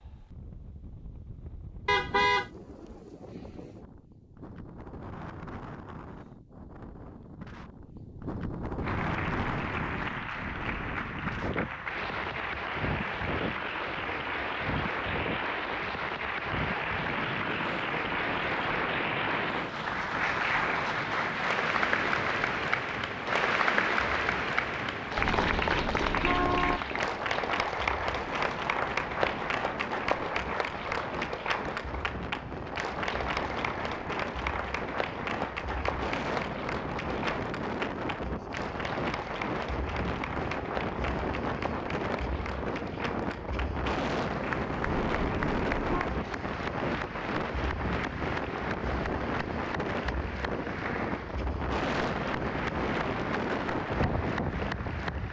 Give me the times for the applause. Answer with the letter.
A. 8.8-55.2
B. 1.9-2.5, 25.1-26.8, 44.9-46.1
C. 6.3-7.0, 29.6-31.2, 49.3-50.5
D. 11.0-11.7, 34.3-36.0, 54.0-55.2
A.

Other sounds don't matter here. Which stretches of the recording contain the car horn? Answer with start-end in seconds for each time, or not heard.
1.9-2.5, 25.1-26.8, 44.9-46.1.